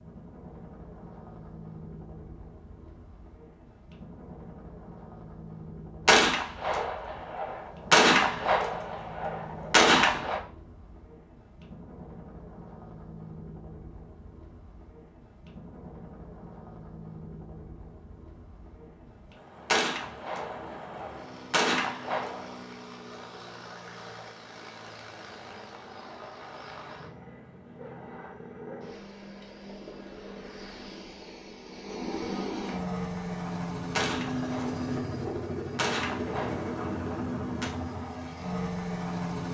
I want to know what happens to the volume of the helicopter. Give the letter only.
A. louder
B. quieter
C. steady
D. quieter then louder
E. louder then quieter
A.